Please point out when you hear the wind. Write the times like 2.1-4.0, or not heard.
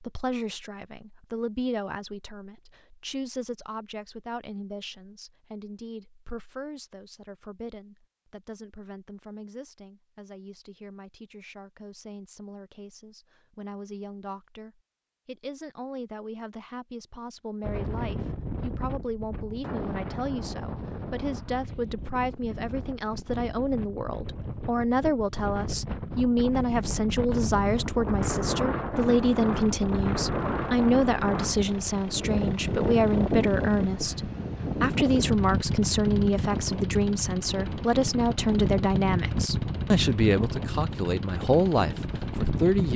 17.6-42.9.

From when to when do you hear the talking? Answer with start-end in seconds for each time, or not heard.
0.0-42.9.